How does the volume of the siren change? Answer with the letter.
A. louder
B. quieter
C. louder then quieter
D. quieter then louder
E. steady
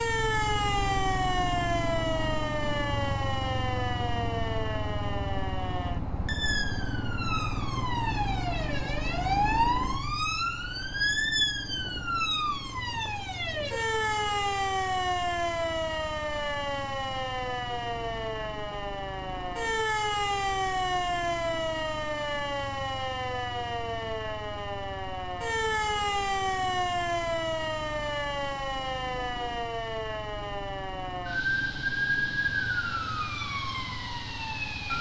E.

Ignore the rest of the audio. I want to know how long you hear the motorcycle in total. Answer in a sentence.
The motorcycle can be heard for 35 seconds in total.